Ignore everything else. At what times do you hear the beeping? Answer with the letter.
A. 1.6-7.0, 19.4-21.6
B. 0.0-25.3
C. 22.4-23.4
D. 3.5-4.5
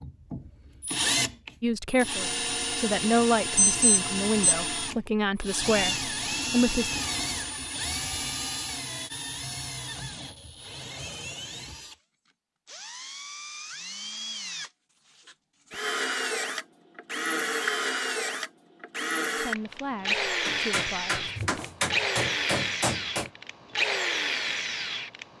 D.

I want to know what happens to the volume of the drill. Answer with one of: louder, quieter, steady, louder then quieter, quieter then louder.
quieter then louder.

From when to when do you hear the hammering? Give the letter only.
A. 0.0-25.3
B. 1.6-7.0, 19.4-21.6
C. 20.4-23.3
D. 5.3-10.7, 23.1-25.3
C.